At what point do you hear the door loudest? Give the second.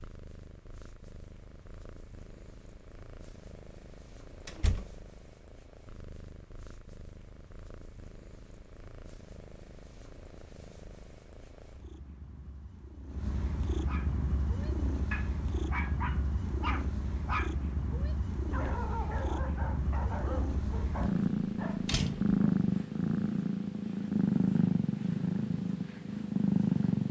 22 s.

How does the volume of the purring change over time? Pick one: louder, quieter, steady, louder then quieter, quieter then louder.
louder.